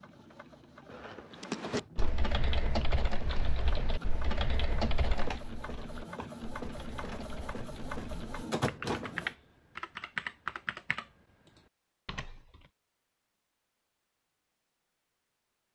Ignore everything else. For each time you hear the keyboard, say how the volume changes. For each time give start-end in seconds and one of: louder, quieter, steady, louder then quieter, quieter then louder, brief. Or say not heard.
1.4-12.7 quieter then louder.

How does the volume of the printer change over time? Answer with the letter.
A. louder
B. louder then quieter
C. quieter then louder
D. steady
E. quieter
A.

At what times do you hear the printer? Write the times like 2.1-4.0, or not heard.
0.0-9.3.